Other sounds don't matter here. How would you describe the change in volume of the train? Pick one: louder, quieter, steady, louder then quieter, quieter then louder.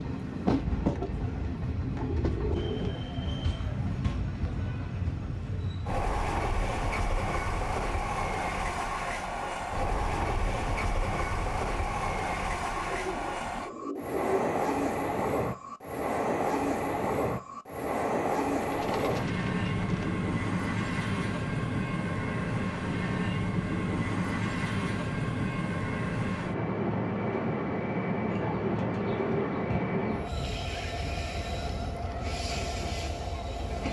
steady.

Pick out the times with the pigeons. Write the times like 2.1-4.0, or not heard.
0.7-2.9, 12.8-14.3, 18.6-20.1, 28.2-30.3.